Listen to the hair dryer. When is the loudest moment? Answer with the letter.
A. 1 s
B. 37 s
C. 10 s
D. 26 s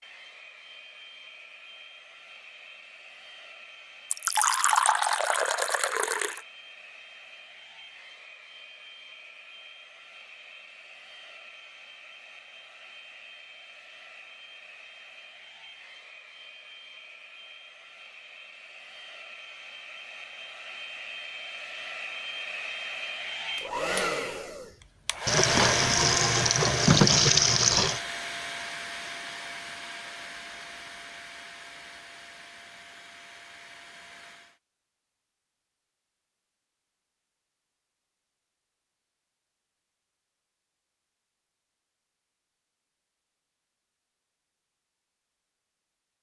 D.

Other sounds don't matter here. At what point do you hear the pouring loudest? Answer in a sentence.
The loudest moment of the pouring is at 27 seconds.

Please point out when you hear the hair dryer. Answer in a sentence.
You can hear the hair dryer from 0.0 to 34.6 s.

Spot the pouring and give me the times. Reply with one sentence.
The pouring can be heard from 4.1 to 6.4 s and from 25.2 to 28.0 s.